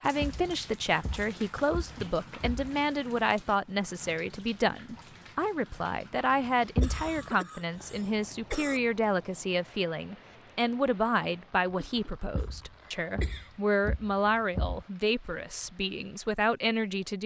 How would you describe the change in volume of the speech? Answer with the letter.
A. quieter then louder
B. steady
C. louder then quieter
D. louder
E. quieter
B.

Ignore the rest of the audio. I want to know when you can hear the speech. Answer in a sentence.
The speech can be heard from 0.0 to 17.2 s.